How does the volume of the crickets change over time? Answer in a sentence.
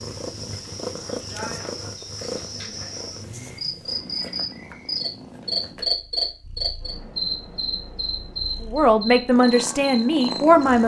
The loudness of the crickets goes up, then down.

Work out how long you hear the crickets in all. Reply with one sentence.
You can hear the crickets for 11 seconds altogether.